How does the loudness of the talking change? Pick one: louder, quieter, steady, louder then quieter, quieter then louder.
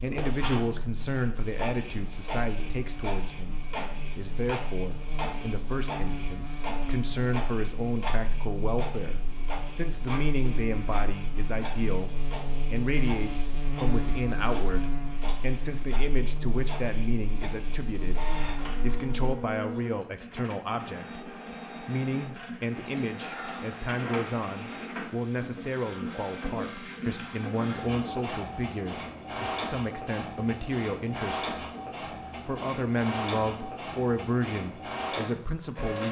steady.